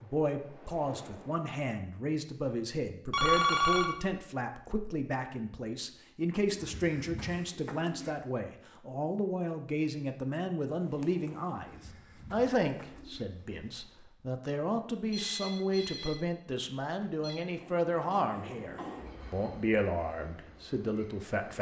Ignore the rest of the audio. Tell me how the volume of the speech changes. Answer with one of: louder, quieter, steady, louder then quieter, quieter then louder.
steady.